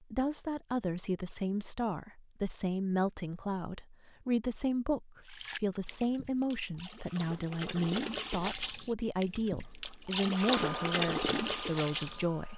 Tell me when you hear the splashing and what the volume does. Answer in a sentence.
The splashing can be heard from 5.2 to 12.2 s, getting louder.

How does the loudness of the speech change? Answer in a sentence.
The loudness of the speech stays about the same.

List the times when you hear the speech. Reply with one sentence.
You can hear the speech from 0.0 to 12.5 s.